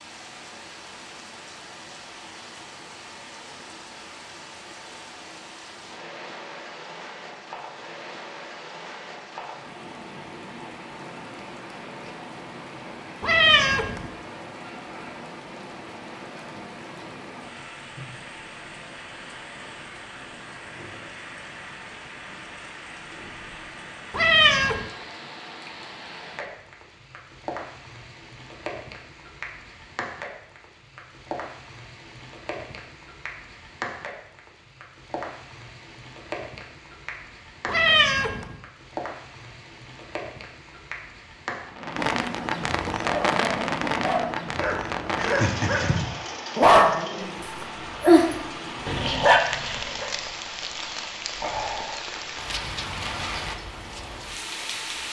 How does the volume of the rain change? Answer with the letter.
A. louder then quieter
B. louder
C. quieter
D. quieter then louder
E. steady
B.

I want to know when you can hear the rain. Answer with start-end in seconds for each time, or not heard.
0.0-55.0.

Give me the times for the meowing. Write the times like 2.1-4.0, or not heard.
13.2-14.1, 24.1-24.9, 37.6-38.5.